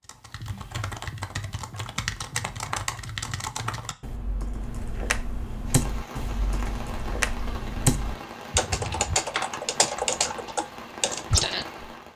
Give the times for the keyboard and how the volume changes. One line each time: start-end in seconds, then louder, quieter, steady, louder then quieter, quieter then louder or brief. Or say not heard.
0.1-11.8 louder.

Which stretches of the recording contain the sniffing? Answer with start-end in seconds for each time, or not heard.
not heard.